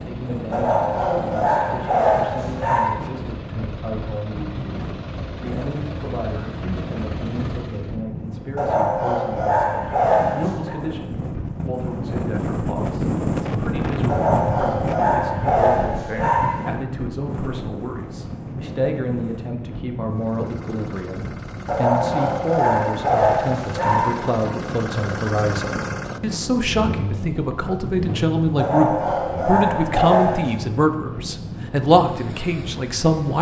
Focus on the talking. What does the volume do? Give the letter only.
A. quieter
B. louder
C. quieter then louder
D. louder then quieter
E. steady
B.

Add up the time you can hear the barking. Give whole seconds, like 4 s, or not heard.
12 s.